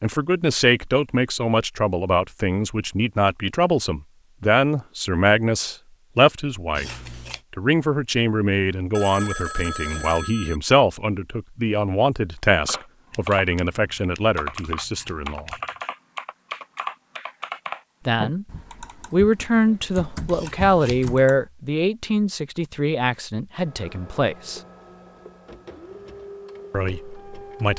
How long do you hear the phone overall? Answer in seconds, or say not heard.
2 s.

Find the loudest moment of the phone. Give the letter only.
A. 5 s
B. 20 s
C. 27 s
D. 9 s
D.